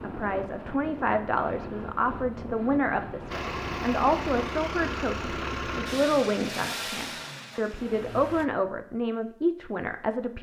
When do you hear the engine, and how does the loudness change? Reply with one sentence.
You can hear the engine from 3.3 to 8.4 s, getting quieter.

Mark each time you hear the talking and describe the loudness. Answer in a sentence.
The talking can be heard from 0.0 to 10.3 s, at a steady volume.